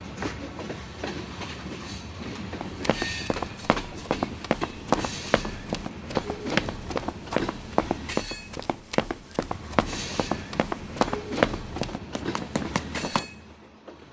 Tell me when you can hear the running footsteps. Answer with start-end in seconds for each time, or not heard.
2.6-13.2.